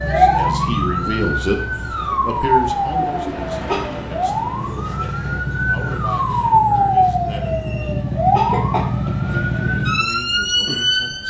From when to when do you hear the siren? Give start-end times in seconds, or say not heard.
0.0-11.2.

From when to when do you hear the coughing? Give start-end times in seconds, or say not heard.
3.0-3.9, 7.6-8.9.